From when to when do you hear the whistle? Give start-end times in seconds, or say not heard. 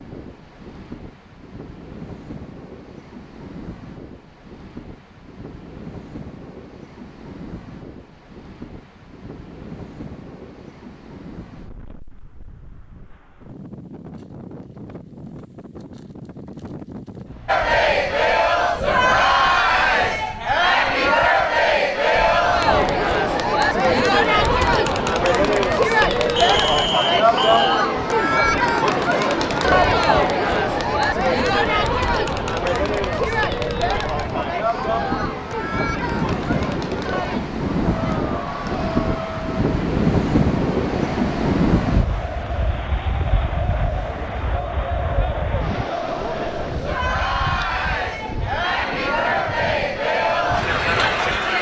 26.4-27.9.